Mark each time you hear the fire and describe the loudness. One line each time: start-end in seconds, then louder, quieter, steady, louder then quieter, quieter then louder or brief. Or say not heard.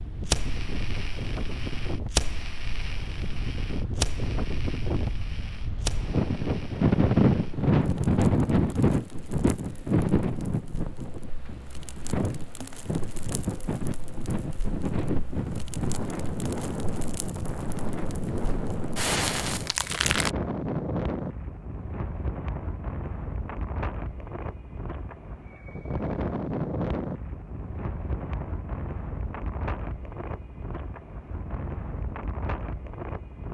0.1-20.3 quieter then louder.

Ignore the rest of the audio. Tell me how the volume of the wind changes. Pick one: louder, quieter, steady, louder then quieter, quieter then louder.
louder then quieter.